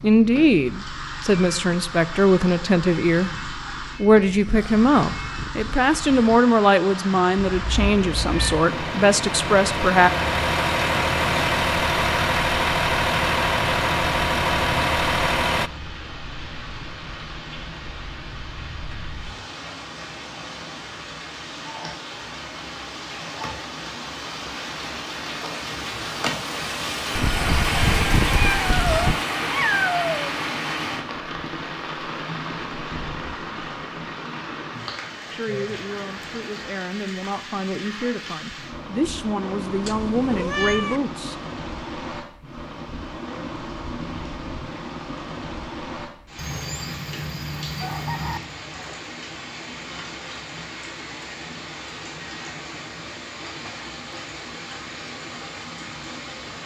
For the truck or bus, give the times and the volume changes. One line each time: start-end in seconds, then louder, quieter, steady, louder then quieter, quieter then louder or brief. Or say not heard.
0.0-15.7 louder.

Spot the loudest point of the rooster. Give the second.
28 s.